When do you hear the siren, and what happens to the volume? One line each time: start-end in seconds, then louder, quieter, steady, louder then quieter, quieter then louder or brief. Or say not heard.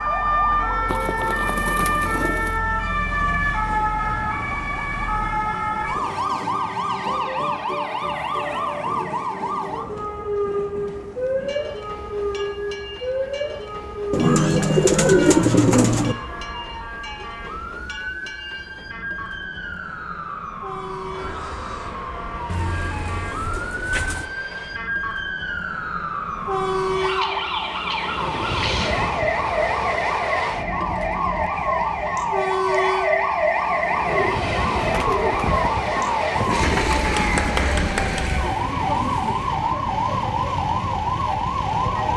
0.0-42.1 quieter then louder.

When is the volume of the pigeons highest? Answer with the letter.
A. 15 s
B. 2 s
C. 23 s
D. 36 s
A.